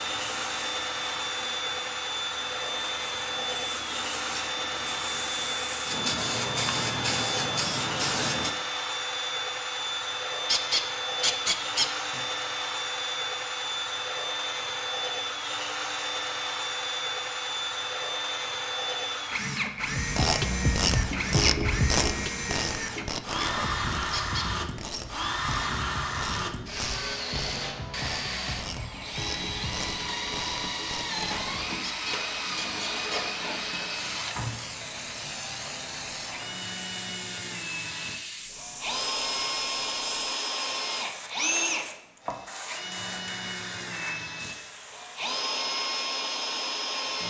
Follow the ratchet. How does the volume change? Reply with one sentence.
The loudness of the ratchet goes down.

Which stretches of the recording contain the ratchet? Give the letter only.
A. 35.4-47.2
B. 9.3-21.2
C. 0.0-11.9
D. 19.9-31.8
D.